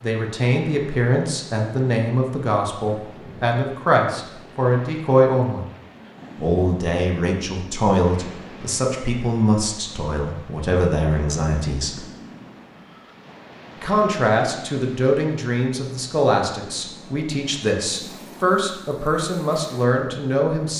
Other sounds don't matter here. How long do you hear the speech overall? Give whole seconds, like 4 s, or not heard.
18 s.